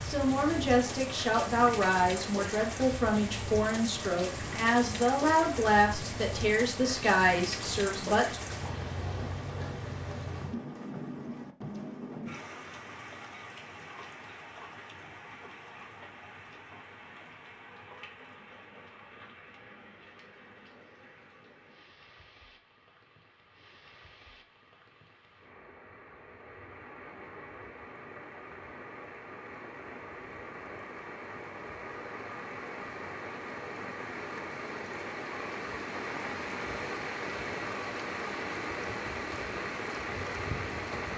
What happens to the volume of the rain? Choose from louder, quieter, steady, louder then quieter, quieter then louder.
quieter then louder.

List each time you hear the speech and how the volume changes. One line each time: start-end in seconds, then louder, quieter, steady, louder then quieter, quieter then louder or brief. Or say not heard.
0.0-8.4 steady.